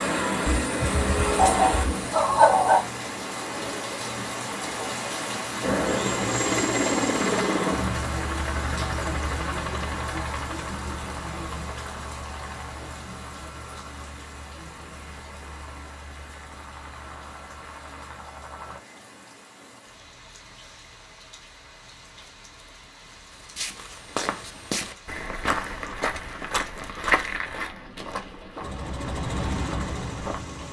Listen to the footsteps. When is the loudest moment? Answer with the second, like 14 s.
27 s.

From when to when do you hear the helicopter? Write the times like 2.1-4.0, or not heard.
0.0-3.8, 5.6-18.8, 28.6-30.6.